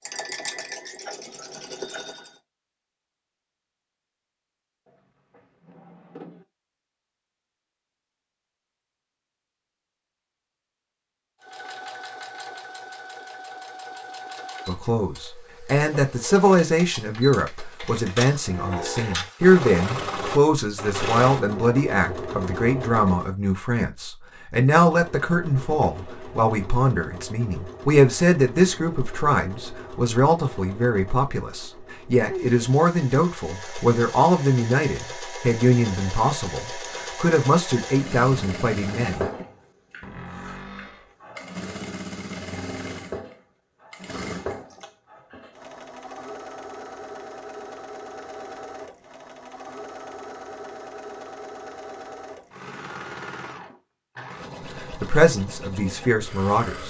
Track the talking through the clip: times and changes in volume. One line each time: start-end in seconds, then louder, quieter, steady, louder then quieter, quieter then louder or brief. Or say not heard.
14.7-39.5 steady
54.9-56.8 brief.